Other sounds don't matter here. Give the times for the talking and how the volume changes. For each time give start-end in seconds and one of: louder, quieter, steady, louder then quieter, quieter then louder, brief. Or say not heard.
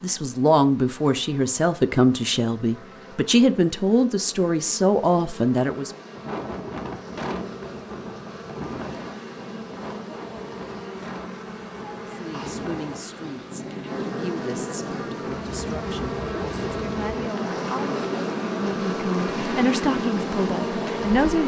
0.0-5.9 steady
12.1-21.4 louder.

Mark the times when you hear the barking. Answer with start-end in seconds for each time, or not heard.
not heard.